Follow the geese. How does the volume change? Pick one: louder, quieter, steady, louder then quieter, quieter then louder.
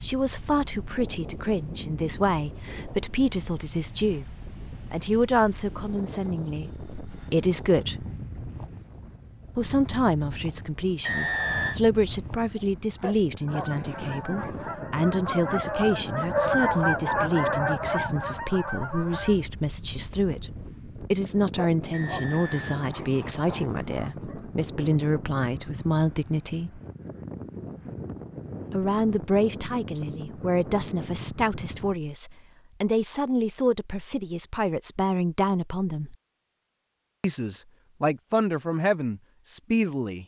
louder then quieter.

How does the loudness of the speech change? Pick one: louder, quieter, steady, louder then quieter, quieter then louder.
steady.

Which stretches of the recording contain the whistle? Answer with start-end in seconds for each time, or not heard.
11.0-11.8, 21.9-22.9.